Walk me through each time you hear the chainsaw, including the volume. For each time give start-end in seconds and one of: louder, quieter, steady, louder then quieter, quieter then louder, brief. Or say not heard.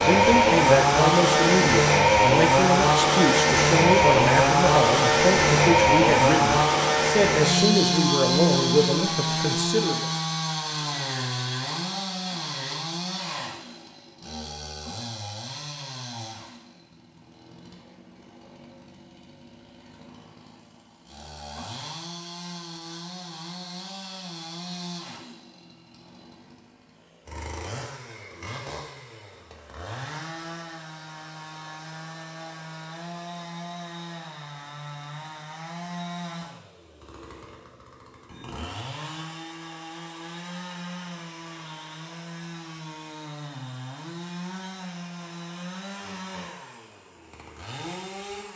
0.0-48.5 quieter.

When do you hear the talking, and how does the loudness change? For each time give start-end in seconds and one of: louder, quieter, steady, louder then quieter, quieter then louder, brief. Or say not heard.
0.0-10.1 steady.